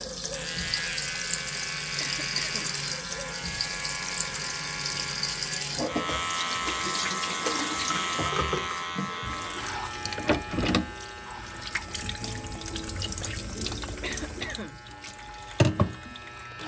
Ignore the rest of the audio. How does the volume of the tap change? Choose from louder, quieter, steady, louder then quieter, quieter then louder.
steady.